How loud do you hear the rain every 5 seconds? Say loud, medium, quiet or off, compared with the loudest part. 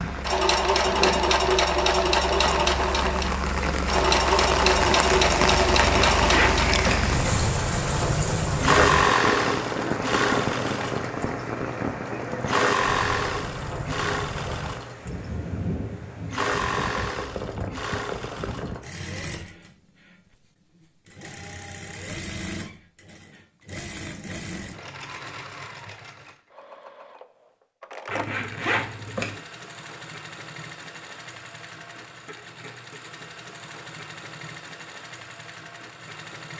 loud, loud, medium, medium, off, off, off, off.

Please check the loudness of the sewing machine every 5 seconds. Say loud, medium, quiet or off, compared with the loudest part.
loud, loud, medium, medium, quiet, quiet, quiet, quiet.